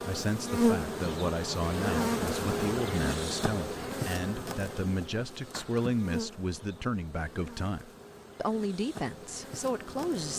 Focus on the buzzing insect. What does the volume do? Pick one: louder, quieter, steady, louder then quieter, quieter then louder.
quieter.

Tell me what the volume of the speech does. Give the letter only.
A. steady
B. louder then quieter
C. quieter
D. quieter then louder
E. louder
A.